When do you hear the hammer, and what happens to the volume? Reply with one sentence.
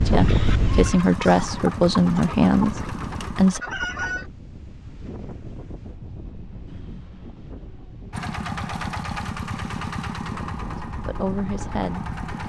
You can't hear the hammer here.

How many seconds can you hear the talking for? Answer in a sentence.
You can hear the talking for 5 seconds altogether.